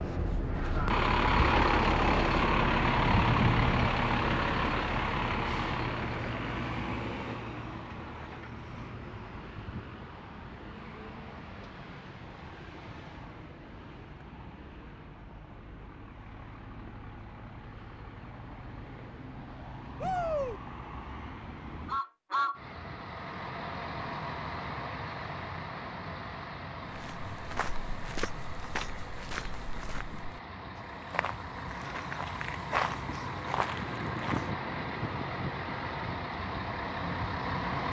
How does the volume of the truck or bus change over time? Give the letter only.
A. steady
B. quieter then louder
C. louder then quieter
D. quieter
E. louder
B.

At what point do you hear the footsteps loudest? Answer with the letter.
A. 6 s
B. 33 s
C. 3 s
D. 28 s
B.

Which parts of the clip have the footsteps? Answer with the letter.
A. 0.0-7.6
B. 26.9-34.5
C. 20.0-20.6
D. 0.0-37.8
B.